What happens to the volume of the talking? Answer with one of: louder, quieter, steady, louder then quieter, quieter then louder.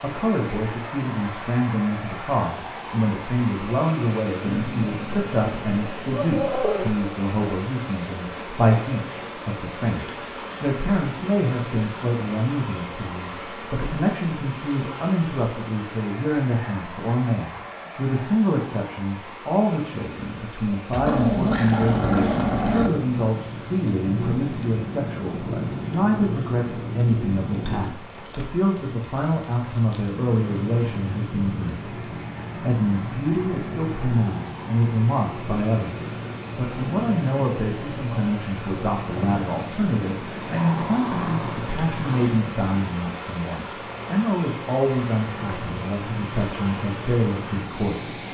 steady.